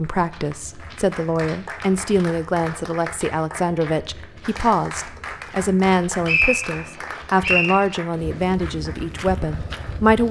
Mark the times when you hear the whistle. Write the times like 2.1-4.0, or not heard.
6.2-7.8.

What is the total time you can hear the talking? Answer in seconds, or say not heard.
10 s.